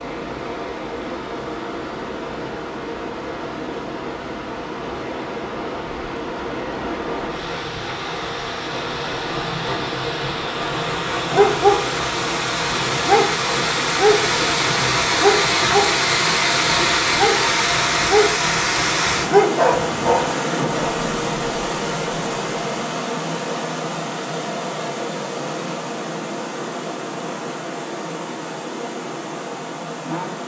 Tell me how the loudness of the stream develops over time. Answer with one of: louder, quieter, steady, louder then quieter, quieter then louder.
louder then quieter.